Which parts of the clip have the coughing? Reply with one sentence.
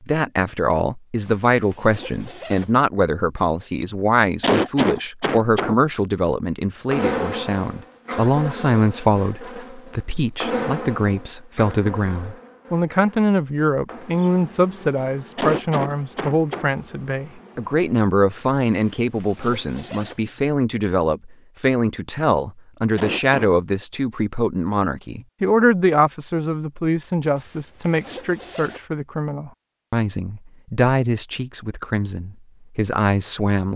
The coughing can be heard from 4.4 to 5.8 s, from 15.3 to 16.7 s and from 22.9 to 23.6 s.